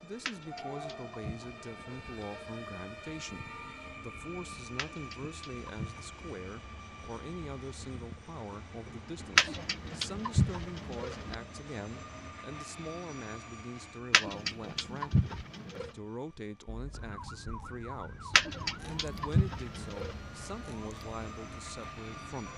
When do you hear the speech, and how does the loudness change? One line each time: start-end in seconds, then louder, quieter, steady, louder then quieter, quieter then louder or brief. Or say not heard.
0.0-22.5 steady.